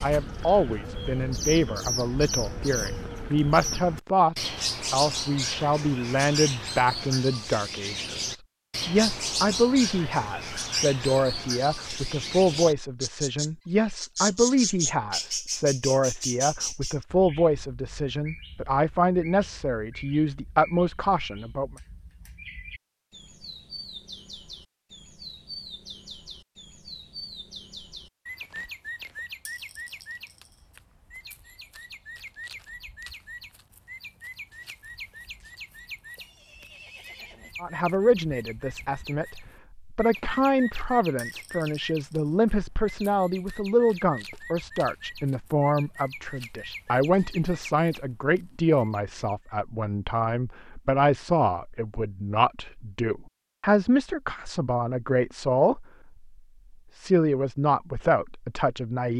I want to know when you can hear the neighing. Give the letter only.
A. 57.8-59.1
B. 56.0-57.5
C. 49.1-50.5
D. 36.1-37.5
D.